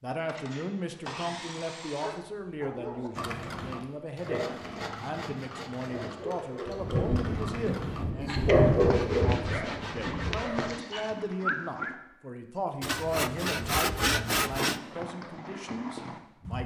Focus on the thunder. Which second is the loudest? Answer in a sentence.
The loudest moment of the thunder is at 9 seconds.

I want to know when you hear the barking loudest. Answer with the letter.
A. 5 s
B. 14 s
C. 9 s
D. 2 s
C.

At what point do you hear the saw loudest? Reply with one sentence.
The loudest moment of the saw is at 14 seconds.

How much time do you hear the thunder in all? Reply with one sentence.
The thunder can be heard for 4 seconds in total.